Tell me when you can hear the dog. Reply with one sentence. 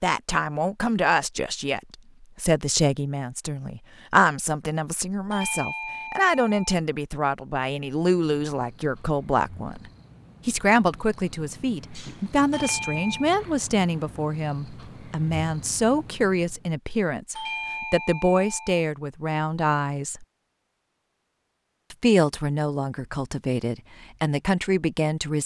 You can't hear the dog here.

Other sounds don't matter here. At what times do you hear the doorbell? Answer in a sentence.
The doorbell can be heard from 5.3 to 6.8 s, from 12.5 to 13.3 s and from 17.4 to 18.8 s.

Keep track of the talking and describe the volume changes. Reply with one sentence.
The loudness of the talking stays about the same.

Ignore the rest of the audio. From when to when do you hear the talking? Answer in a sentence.
The talking can be heard from 0.0 to 20.2 s and from 21.9 to 25.4 s.